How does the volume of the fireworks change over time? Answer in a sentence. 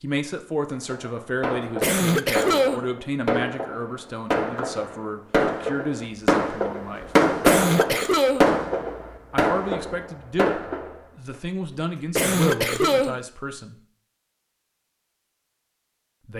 The loudness of the fireworks goes up, then down.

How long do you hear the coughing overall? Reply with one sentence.
The coughing can be heard for 3 seconds in total.